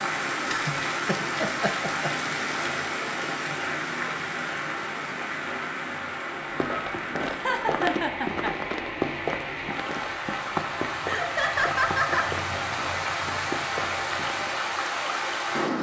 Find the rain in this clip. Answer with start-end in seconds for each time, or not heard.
0.0-15.7.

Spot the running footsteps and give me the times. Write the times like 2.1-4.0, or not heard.
6.5-14.6.